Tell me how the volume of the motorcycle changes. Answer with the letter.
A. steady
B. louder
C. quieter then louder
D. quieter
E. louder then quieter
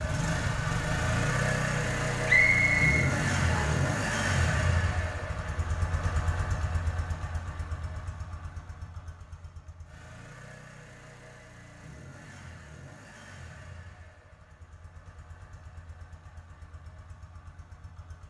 D.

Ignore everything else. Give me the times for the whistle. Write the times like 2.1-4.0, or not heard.
2.2-3.9.